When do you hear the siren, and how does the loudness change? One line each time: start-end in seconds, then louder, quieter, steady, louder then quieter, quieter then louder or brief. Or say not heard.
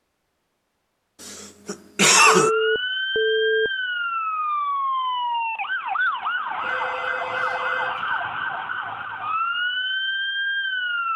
2.3-11.1 steady.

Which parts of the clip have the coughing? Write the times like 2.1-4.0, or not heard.
1.2-2.5.